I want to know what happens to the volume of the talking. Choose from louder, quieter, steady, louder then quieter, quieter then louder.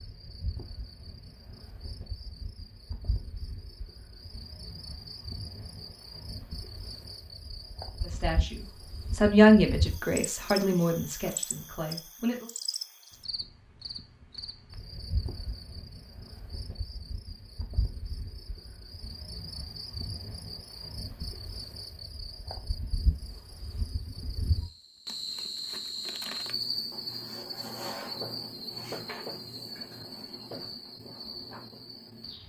louder then quieter.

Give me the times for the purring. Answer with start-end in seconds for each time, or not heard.
not heard.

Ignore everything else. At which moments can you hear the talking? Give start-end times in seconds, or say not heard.
8.0-12.5.